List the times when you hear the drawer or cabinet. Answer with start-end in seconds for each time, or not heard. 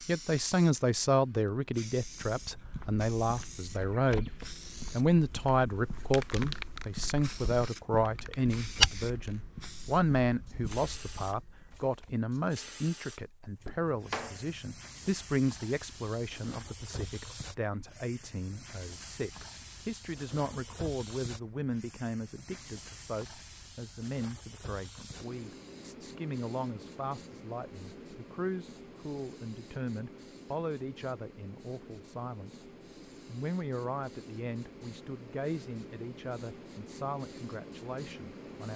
13.7-14.4.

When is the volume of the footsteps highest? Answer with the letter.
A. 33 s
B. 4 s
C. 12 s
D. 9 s
D.